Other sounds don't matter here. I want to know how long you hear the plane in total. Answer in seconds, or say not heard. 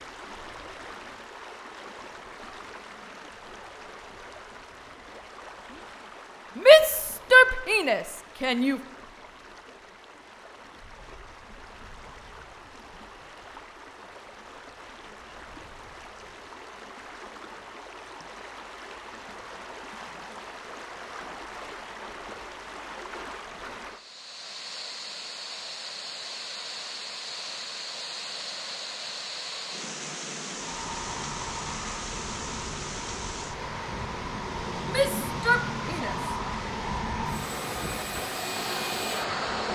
9 s.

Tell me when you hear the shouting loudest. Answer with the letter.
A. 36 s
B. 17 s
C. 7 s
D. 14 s
C.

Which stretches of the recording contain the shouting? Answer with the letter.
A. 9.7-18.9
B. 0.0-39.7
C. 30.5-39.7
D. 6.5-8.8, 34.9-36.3
D.